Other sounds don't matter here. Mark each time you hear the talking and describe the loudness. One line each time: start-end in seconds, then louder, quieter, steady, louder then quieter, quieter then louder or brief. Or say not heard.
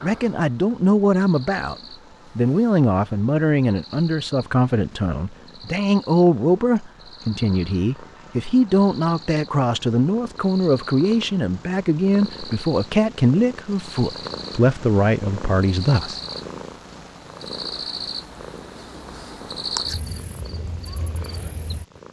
0.0-1.8 brief
2.4-16.2 steady.